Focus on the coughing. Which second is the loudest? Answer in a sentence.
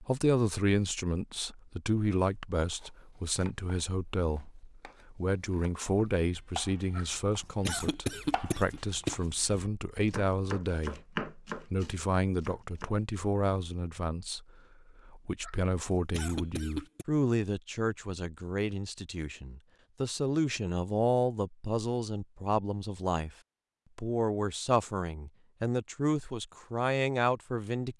The loudest moment of the coughing is at 8 seconds.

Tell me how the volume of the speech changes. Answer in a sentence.
The loudness of the speech stays about the same.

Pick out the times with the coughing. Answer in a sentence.
You can hear the coughing from 7.0 to 9.2 s and from 15.4 to 17.1 s.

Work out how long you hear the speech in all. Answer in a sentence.
The speech can be heard for 27 seconds in total.